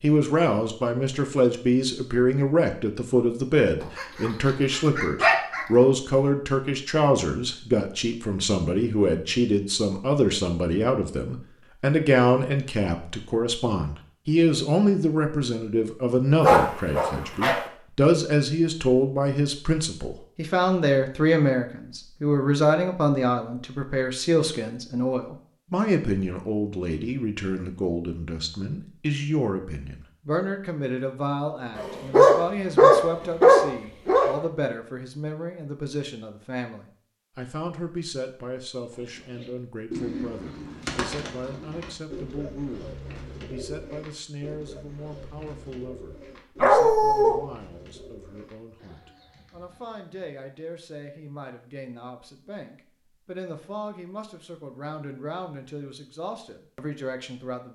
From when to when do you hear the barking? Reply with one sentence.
You can hear the barking from 3.8 to 5.7 s, from 16.4 to 17.6 s, from 31.8 to 34.5 s and from 46.6 to 47.4 s.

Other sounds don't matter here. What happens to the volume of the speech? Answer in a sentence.
The volume of the speech goes down.